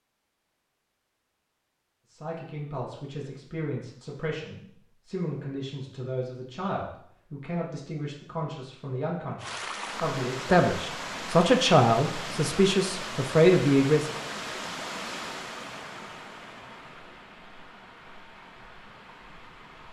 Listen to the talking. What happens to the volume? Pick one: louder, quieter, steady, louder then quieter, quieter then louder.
louder.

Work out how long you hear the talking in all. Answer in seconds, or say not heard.
12 s.